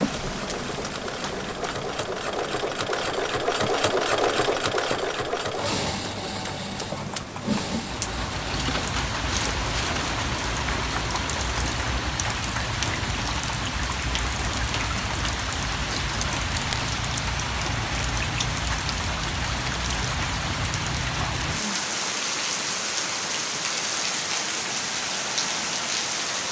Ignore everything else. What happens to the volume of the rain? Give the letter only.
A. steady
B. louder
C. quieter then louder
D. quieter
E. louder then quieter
B.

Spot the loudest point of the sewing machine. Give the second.
4 s.